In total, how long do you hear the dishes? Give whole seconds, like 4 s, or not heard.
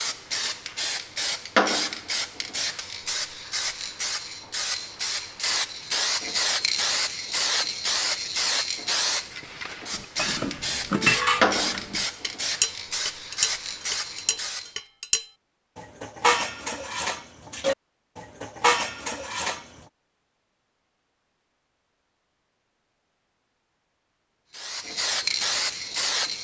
10 s.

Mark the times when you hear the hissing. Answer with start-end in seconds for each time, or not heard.
0.0-14.7, 24.5-26.3.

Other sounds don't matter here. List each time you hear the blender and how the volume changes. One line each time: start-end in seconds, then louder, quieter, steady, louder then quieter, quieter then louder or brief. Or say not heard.
not heard.